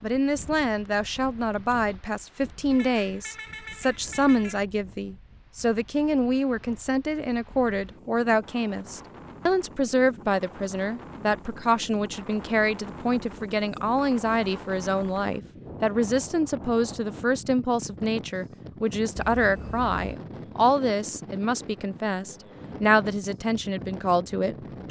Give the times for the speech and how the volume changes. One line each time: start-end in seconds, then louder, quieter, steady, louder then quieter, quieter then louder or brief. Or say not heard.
0.0-24.8 steady.